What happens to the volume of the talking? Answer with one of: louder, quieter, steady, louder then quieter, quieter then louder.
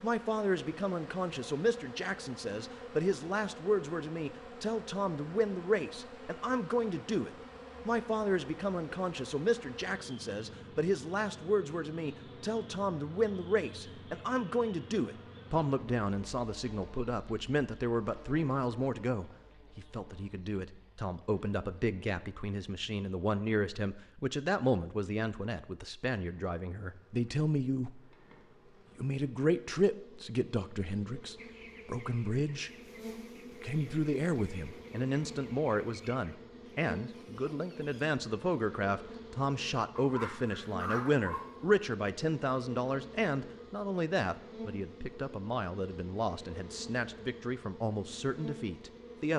steady.